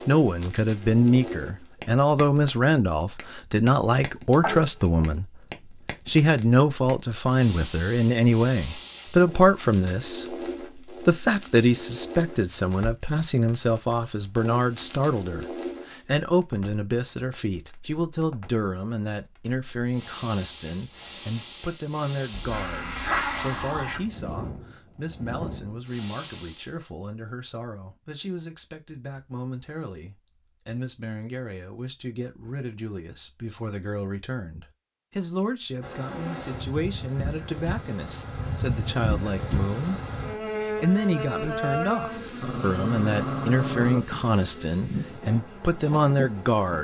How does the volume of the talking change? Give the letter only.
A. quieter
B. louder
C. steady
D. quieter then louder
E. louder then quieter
D.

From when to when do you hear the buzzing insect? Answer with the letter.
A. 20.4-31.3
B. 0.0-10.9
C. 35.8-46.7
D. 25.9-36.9
C.